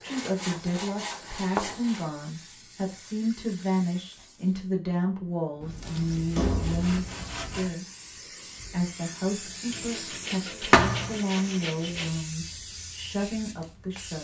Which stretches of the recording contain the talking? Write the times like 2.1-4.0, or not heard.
0.0-7.8, 8.7-14.1.